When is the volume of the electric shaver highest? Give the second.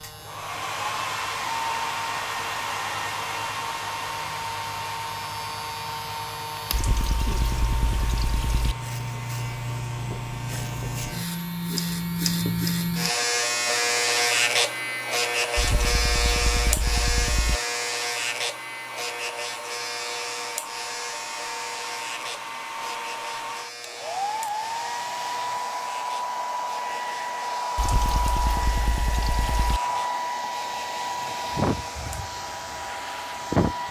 14 s.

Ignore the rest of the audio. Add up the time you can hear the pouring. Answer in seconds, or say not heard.
6 s.